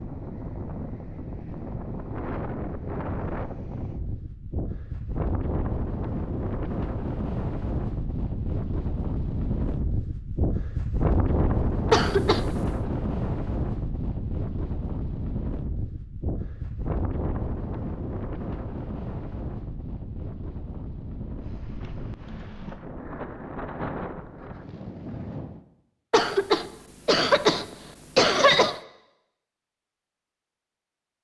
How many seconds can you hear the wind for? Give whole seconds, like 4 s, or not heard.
26 s.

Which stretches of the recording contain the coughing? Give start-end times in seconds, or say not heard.
11.9-12.4, 26.1-28.8.